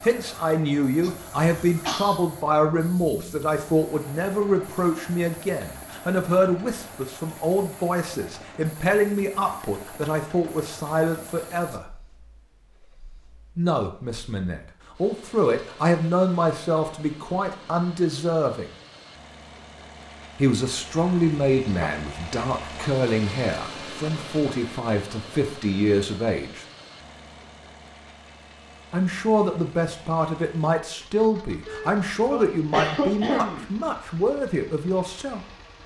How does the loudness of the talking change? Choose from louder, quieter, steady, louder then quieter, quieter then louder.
steady.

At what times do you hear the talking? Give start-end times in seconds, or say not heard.
0.0-11.8, 13.6-18.7, 20.4-26.6, 28.9-35.4.